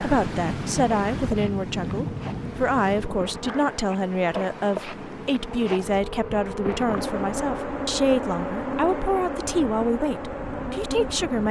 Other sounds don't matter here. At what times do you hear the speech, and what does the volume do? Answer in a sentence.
You can hear the speech from 0.0 to 11.4 s, at a steady volume.